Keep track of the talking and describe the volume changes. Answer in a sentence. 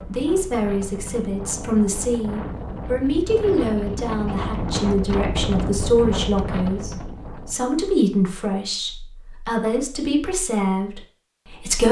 The loudness of the talking stays about the same.